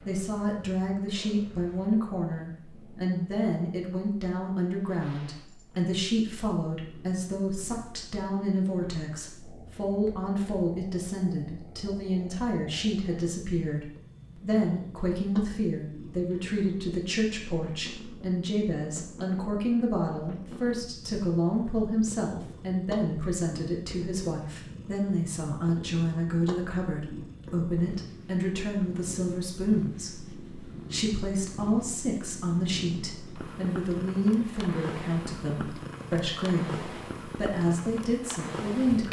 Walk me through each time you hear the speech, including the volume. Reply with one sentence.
You can hear the speech from 0.0 to 39.0 s, at a steady volume.